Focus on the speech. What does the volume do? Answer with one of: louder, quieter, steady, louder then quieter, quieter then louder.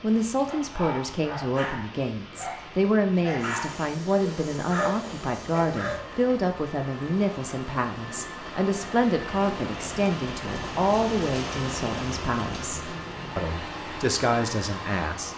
steady.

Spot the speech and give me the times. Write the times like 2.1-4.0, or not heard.
0.0-15.3.